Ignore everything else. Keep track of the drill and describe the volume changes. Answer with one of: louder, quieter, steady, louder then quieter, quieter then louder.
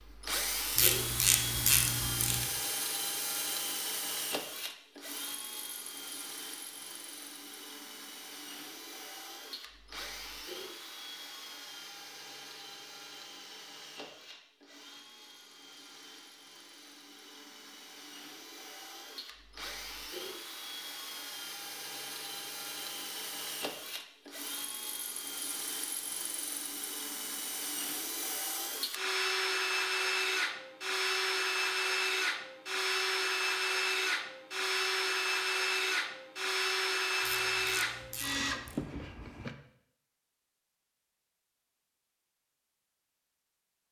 quieter then louder.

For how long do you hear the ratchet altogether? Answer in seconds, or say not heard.
3 s.